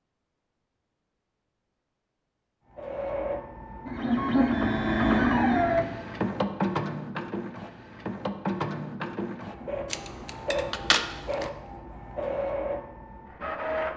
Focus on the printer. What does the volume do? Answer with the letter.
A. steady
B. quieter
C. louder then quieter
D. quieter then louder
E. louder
B.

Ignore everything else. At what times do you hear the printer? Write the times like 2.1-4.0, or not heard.
2.8-13.9.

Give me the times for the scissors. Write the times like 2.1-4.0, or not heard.
9.8-11.5.